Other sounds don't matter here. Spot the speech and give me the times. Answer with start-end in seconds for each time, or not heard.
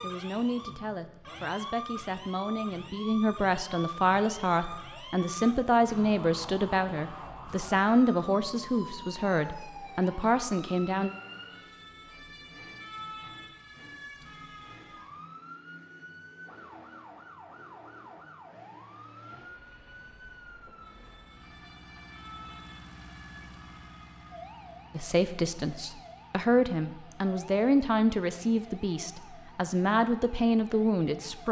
0.0-11.1, 24.9-31.4.